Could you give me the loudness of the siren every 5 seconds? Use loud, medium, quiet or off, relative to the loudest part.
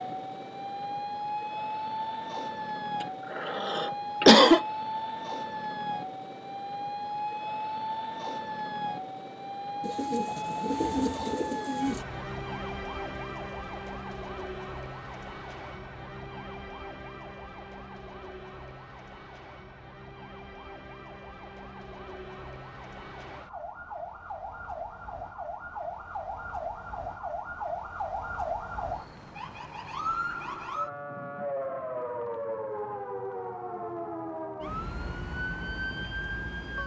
loud, loud, loud, medium, medium, loud, loud, loud.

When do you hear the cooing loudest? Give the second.
11 s.